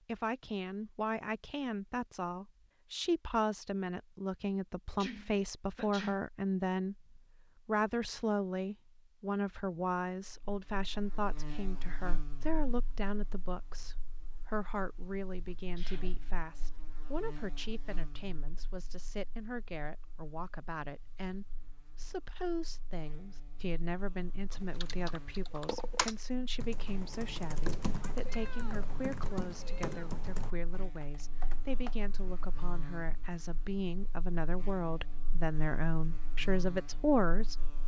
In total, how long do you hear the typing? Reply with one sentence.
The typing can be heard for 7 seconds in total.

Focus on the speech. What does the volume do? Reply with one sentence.
The loudness of the speech goes down, then up.